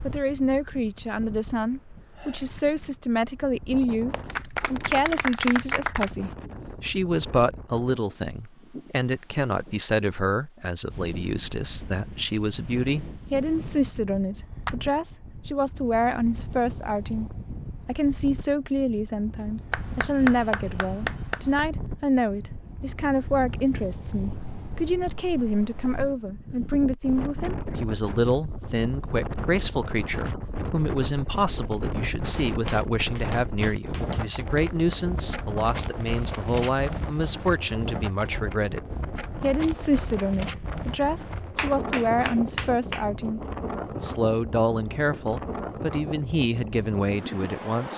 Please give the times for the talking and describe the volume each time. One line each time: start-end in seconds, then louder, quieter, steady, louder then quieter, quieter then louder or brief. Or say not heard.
0.0-47.9 steady.